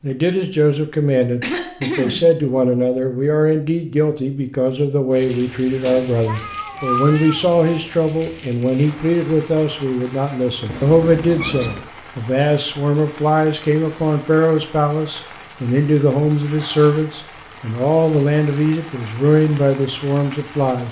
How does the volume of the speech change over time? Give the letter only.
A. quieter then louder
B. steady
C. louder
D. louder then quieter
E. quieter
B.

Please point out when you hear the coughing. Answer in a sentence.
The coughing can be heard from 0.9 to 2.3 s.